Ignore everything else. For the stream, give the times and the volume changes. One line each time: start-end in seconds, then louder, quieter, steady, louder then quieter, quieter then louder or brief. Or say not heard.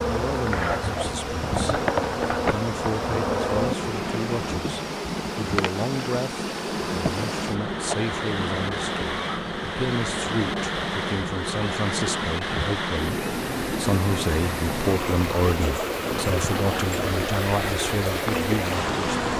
0.0-19.3 louder.